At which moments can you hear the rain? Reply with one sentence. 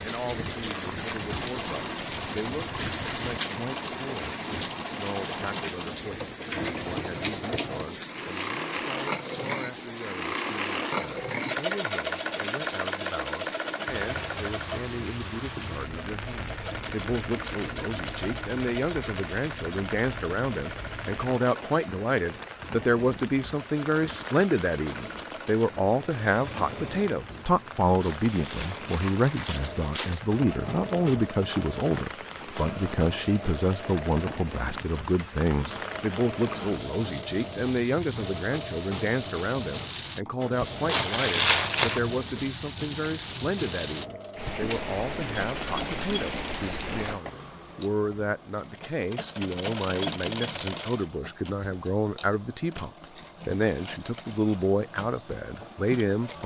You can hear the rain from 0.0 to 47.2 s.